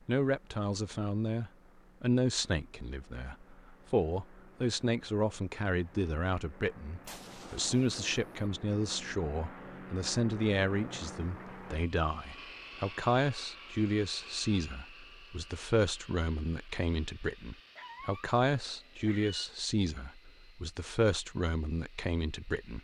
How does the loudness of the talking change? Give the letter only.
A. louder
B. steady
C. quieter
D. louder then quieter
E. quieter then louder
B.